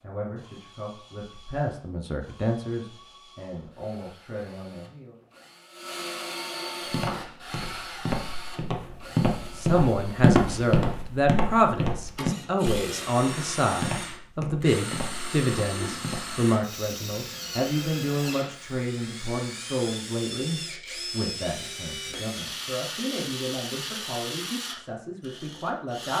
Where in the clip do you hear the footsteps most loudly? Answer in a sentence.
The loudest moment of the footsteps is at 10 seconds.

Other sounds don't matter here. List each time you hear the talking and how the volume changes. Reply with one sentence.
The talking can be heard from 0.0 to 5.2 s, getting louder then quieter; and from 9.6 to 26.1 s, getting quieter.